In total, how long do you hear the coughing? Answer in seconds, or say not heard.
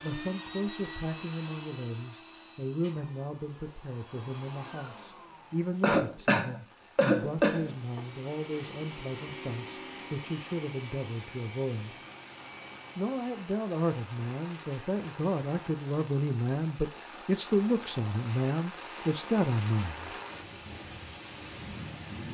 2 s.